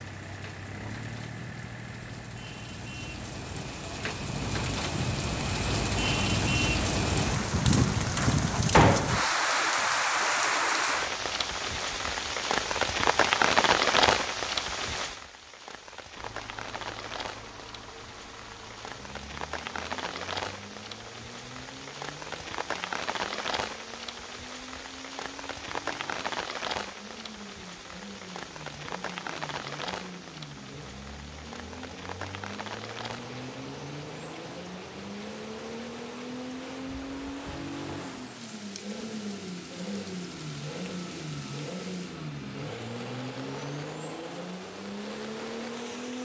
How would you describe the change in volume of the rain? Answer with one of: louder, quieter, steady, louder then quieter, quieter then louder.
quieter.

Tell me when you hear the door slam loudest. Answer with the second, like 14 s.
9 s.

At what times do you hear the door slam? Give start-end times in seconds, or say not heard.
7.5-9.2.